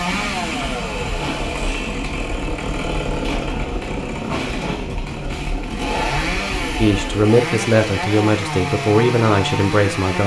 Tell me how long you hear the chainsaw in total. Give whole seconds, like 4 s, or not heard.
10 s.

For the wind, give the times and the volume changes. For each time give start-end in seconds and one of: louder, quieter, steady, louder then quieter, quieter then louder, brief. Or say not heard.
0.0-7.3 steady.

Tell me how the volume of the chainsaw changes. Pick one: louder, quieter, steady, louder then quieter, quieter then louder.
steady.